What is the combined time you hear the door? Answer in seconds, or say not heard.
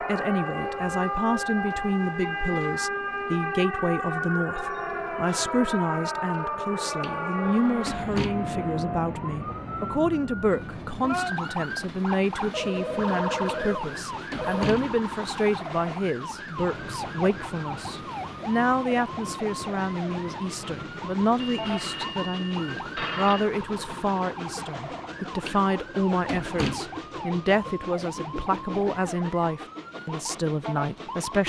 4 s.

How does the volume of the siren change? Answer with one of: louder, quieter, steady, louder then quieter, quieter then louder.
quieter.